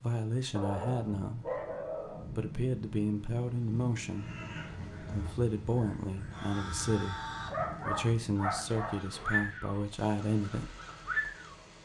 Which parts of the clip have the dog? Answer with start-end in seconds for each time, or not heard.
0.5-2.2, 7.5-9.4.